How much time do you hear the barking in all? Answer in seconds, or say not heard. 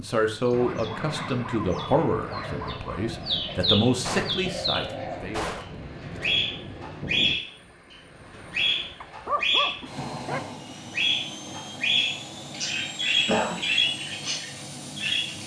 4 s.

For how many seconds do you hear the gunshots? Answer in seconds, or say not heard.
3 s.